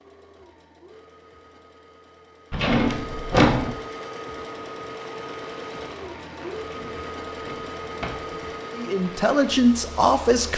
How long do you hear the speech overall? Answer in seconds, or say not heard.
2 s.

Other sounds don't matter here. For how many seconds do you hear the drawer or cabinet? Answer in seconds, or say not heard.
3 s.